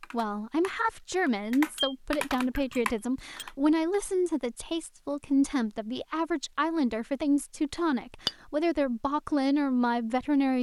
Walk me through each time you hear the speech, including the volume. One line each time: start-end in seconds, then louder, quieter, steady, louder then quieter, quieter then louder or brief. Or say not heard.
0.1-10.5 steady.